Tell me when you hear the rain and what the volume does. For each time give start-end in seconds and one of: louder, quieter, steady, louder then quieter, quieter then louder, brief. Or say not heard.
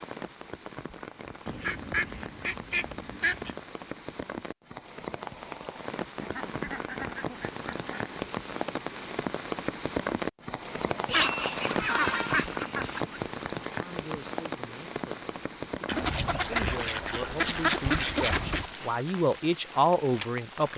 0.0-20.7 louder then quieter.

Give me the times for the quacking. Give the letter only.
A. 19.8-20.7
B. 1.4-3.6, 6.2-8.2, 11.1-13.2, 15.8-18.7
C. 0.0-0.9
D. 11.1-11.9
B.